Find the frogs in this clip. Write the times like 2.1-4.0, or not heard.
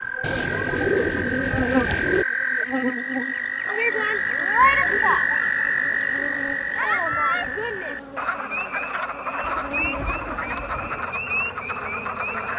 0.0-12.5.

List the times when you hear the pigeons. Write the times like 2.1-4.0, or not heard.
0.2-2.2, 4.5-6.2, 9.4-11.1.